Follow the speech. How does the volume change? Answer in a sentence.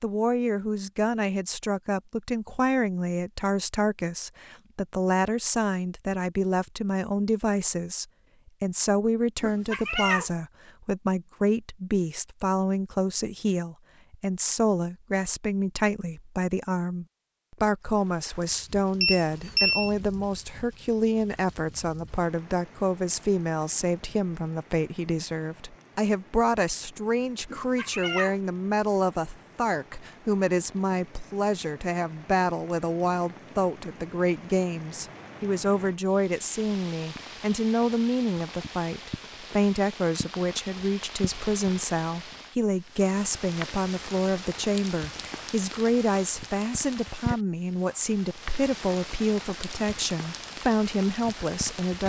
The volume of the speech stays about the same.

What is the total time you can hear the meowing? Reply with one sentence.
You can hear the meowing for 2 seconds altogether.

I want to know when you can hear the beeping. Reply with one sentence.
The beeping can be heard from 19.0 to 19.9 s.